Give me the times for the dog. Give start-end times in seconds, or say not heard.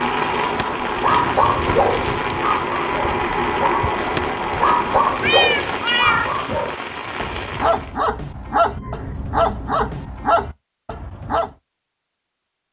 0.2-11.5.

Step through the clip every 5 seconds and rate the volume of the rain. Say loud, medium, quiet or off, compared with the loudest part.
loud, loud, off.